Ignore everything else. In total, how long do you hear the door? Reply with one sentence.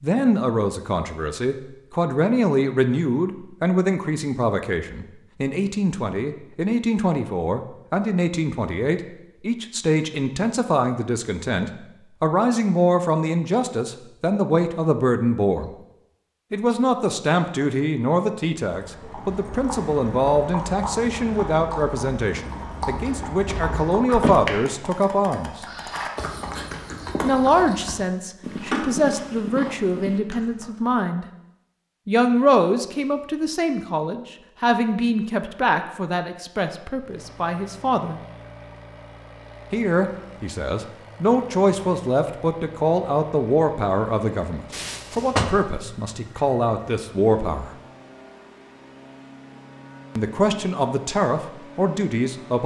The door can be heard for 2 seconds in total.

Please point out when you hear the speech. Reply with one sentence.
The speech can be heard from 0.0 to 15.7 s, from 16.5 to 25.6 s, from 27.2 to 31.2 s, from 32.0 to 38.2 s, from 39.7 to 47.7 s and from 50.1 to 52.6 s.